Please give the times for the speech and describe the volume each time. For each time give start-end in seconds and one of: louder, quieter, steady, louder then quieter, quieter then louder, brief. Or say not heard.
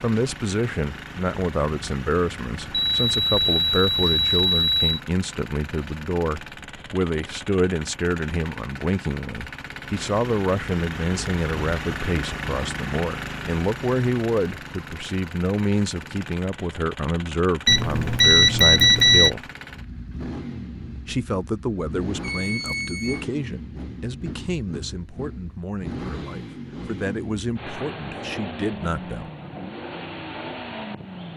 0.0-19.5 steady
21.1-29.3 steady.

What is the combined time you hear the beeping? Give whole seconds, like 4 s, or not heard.
5 s.